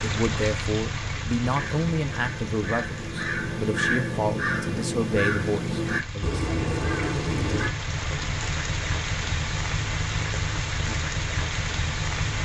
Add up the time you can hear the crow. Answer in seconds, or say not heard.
6 s.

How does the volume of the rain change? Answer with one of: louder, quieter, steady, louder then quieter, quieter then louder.
quieter then louder.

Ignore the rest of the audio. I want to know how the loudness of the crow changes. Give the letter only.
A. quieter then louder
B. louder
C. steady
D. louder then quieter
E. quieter
B.